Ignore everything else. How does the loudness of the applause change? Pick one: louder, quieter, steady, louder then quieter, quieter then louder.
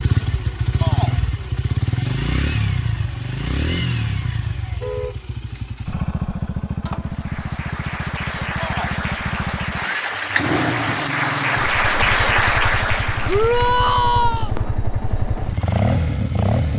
louder.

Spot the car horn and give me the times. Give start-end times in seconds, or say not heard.
4.7-5.2.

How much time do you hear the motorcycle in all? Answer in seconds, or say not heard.
17 s.